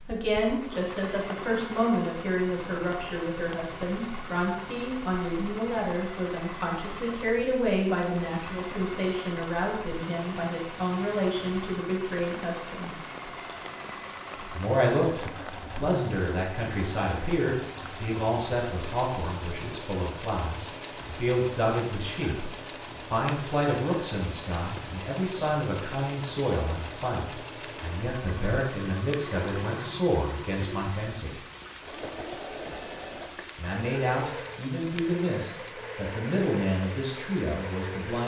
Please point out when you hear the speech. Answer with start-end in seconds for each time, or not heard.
0.1-12.9, 14.5-31.4, 33.5-38.2.